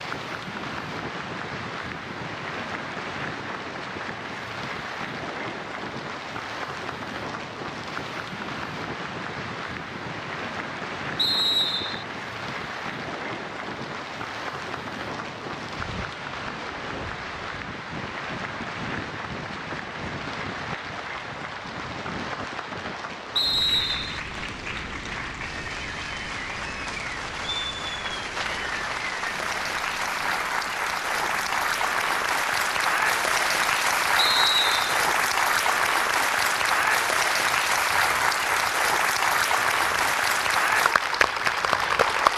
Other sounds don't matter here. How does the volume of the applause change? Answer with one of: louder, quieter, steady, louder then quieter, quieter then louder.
louder.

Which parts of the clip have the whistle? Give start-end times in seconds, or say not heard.
11.2-12.1, 23.4-24.2, 34.1-35.0.